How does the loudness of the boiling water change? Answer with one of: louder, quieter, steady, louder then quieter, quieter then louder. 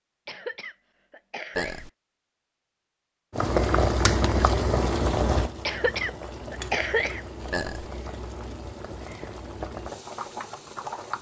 quieter.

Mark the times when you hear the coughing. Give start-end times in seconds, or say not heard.
0.2-1.9, 5.7-7.2.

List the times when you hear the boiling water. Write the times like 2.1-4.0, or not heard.
3.3-11.1.